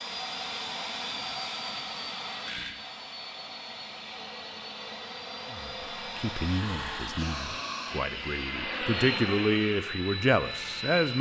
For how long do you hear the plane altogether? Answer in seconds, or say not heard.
11 s.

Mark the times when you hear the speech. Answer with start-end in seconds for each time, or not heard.
5.5-11.1.